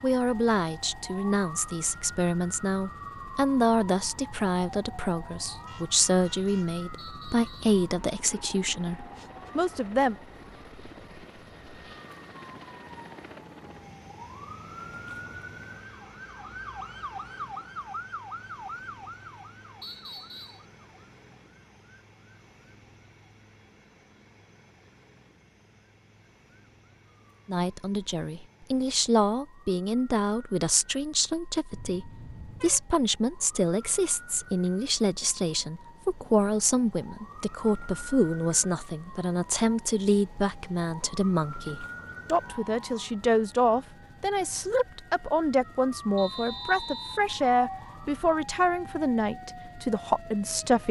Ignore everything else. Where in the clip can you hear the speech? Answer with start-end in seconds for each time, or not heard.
0.0-10.2, 27.4-50.8.